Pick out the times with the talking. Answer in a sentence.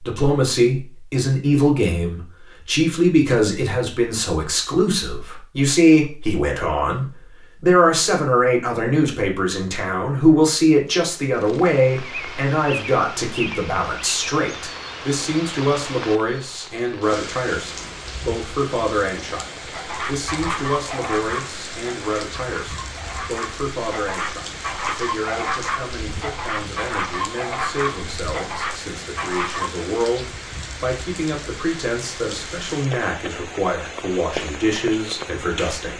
The talking can be heard from 0.0 to 35.9 s.